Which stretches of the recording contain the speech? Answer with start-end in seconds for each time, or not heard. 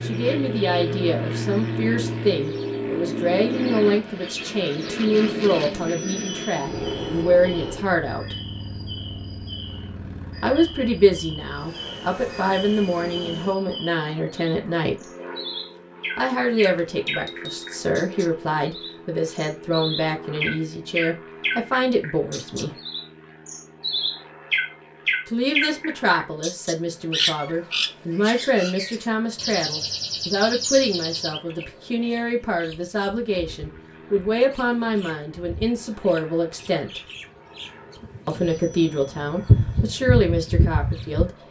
0.0-8.3, 10.4-15.1, 16.1-22.8, 25.2-37.0, 38.2-41.4.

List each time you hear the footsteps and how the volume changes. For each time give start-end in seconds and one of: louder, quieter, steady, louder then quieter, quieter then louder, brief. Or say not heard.
not heard.